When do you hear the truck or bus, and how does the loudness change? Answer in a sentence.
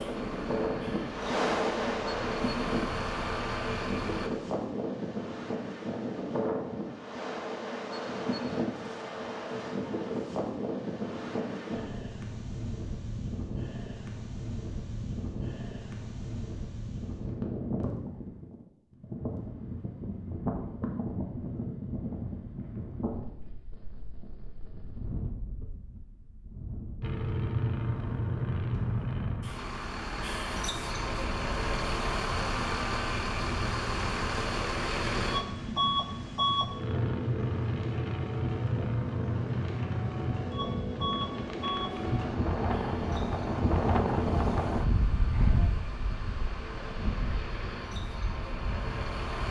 You can hear the truck or bus from 0.0 to 4.3 s, getting louder; and from 27.0 to 49.4 s, getting quieter.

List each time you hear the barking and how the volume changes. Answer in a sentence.
The barking can't be heard in this clip.